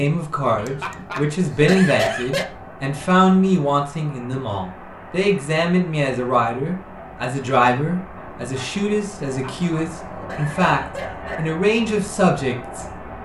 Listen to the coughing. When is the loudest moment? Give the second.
2 s.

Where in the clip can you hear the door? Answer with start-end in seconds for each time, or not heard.
not heard.